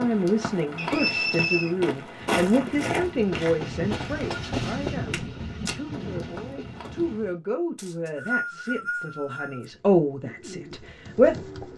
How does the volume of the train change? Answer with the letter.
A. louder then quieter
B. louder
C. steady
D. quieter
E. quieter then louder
A.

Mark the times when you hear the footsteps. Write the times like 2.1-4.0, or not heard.
0.0-7.2.